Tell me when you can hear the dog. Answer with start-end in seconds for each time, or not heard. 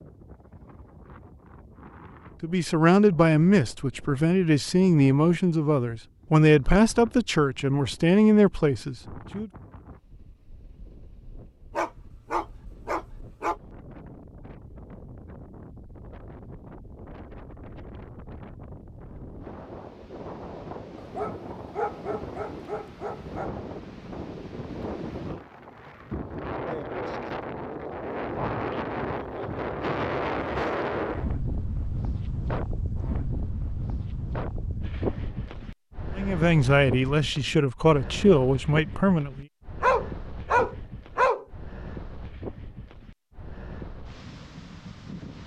11.7-13.6, 20.9-23.5, 39.8-41.5.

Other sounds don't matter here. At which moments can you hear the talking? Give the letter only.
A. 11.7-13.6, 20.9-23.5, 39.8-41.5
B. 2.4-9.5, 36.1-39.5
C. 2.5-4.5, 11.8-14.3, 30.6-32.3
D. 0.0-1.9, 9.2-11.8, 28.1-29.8
B.